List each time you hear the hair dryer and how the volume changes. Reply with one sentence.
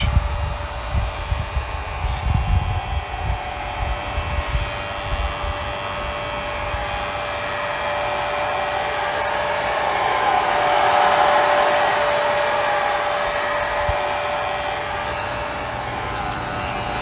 You can hear the hair dryer from 0.0 to 16.9 s, getting louder then quieter.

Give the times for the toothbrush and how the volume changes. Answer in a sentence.
The toothbrush can't be heard in this clip.